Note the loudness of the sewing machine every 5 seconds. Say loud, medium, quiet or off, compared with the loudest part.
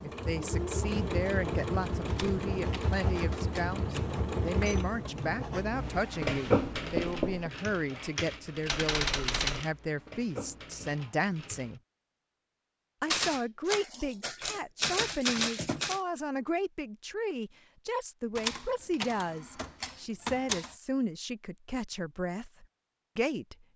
loud, loud, medium, off, off.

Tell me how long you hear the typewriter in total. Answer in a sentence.
The typewriter can be heard for 8 seconds in total.